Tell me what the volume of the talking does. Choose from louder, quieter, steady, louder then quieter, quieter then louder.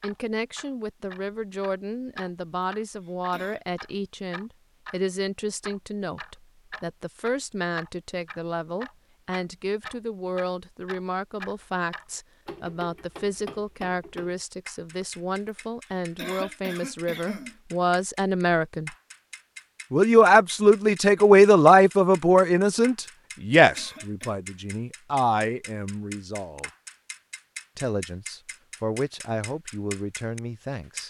louder then quieter.